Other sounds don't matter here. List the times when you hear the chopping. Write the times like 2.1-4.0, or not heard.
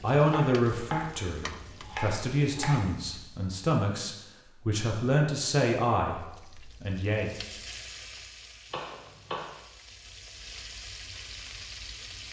0.2-2.8, 8.7-9.6.